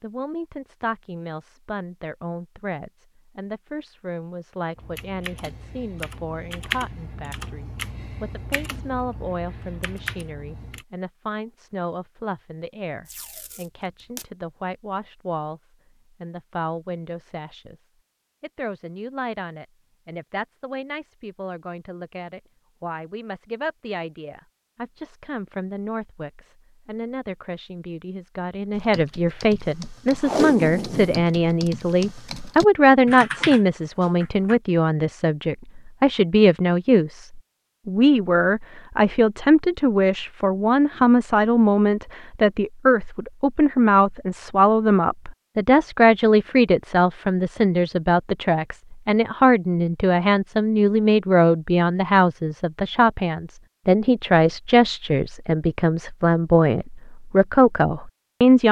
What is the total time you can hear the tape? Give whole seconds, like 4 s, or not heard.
3 s.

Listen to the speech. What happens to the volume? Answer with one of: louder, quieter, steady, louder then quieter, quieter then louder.
louder.